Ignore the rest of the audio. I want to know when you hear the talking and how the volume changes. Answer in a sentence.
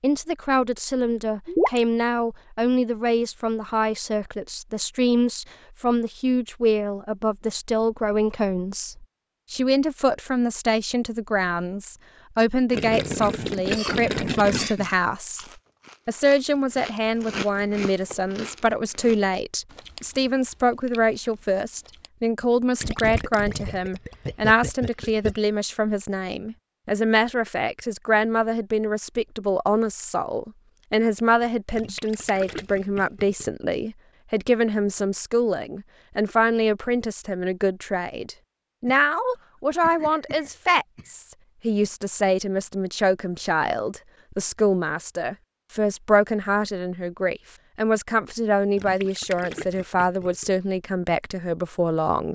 The talking can be heard from 0.0 to 15.4 s, at a steady volume; and from 16.1 to 52.3 s, at a steady volume.